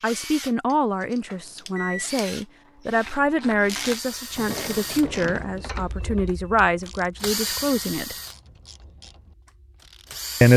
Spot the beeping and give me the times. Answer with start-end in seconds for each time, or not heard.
1.2-2.3.